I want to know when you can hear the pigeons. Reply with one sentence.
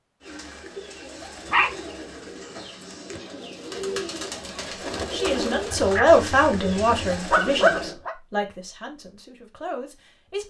You can hear the pigeons from 0.2 to 8.0 s.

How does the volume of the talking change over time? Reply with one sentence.
The loudness of the talking goes down.